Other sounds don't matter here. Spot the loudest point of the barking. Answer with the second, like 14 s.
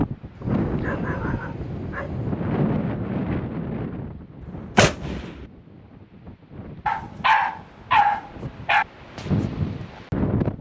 8 s.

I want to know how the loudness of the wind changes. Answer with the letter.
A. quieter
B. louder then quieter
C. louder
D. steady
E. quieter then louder
E.